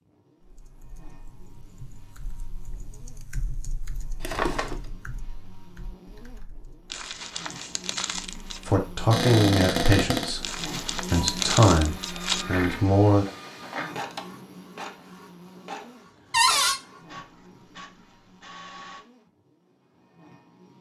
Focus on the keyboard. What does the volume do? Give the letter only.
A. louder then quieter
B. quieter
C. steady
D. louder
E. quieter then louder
A.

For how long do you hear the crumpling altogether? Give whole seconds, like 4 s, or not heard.
4 s.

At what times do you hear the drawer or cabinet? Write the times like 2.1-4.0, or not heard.
4.2-4.8, 9.1-10.3, 16.3-16.8.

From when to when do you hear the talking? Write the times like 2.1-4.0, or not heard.
8.4-13.2.